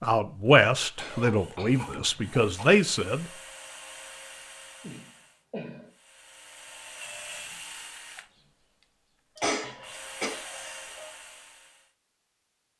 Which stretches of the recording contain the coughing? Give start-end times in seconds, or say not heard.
0.9-2.6, 4.8-5.9, 9.3-11.1.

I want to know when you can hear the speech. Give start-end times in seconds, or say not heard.
0.0-3.2.